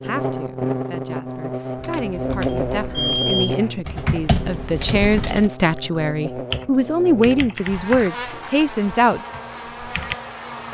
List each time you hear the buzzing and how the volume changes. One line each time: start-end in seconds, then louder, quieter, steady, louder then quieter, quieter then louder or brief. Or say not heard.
0.0-10.6 quieter.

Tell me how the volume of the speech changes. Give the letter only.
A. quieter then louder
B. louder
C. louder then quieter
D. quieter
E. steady
B.